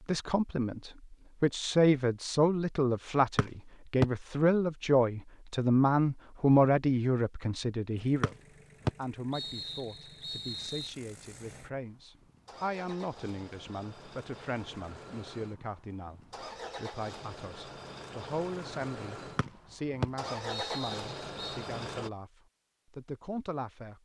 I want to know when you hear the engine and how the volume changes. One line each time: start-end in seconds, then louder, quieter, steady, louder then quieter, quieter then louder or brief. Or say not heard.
8.0-22.1 louder.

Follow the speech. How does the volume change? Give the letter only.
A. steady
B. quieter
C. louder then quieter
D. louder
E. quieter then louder
B.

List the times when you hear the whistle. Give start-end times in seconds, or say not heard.
3.4-4.0, 8.2-10.9, 19.4-21.6.